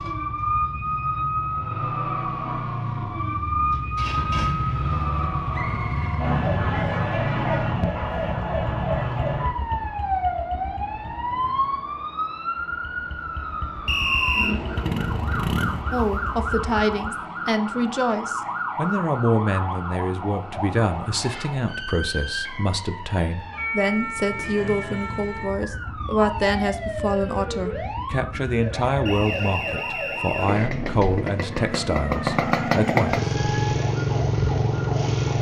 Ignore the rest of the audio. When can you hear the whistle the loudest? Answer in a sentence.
The volume of the whistle peaks at 14 seconds.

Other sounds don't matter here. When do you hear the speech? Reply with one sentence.
The speech can be heard from 15.9 to 33.2 s.